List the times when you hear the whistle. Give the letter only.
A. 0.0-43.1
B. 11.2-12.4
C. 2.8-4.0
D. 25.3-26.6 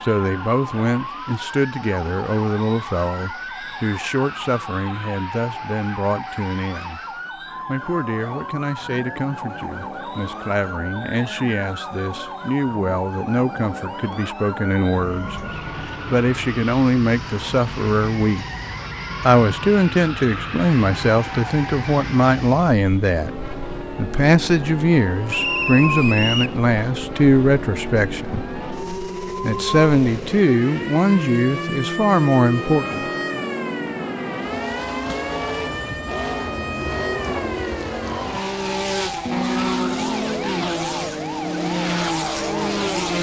D.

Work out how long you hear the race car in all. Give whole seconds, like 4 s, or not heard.
43 s.